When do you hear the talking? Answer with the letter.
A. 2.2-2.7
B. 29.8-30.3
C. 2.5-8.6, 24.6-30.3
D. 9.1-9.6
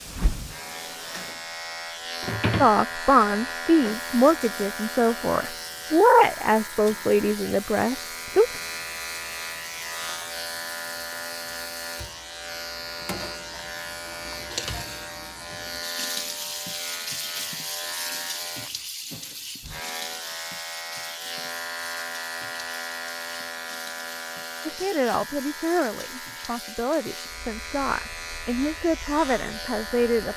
C.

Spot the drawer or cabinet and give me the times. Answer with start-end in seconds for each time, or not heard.
2.2-2.7.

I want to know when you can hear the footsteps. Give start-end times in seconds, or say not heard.
not heard.